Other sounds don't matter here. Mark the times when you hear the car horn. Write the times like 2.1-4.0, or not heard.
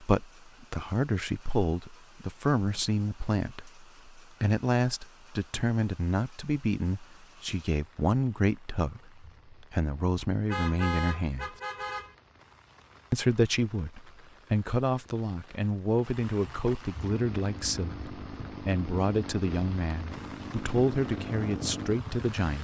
10.4-12.2.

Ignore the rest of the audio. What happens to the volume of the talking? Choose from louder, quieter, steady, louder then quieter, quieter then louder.
steady.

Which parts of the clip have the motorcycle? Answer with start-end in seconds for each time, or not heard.
17.1-22.4.